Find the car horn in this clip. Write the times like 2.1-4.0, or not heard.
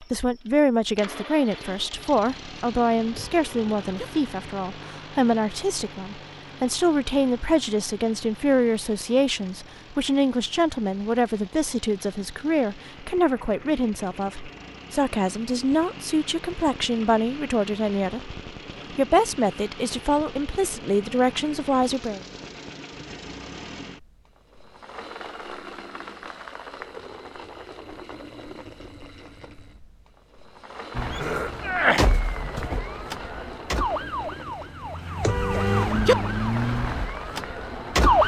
3.1-4.0, 35.2-36.1.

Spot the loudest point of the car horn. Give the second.
36 s.